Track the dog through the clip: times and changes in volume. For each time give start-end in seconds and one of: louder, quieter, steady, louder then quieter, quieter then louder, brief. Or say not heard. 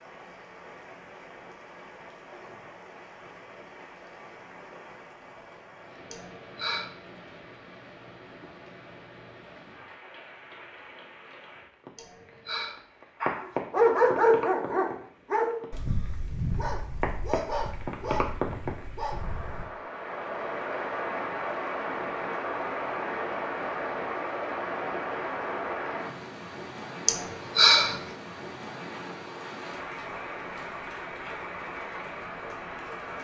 13.2-19.7 quieter.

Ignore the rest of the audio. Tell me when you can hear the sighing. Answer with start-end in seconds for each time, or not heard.
6.1-6.9, 11.9-12.8, 27.1-28.0.